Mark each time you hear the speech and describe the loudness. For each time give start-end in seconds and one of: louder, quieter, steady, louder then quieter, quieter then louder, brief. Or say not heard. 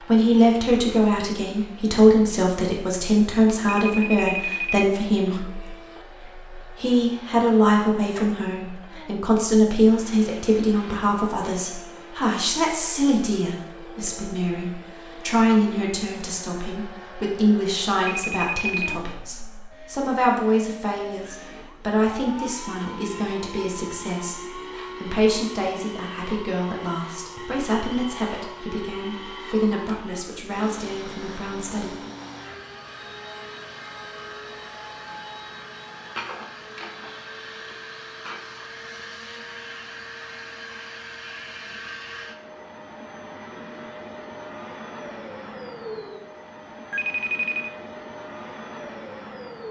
0.0-32.1 quieter.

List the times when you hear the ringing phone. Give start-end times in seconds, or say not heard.
3.6-5.5, 18.1-18.9, 46.9-47.7.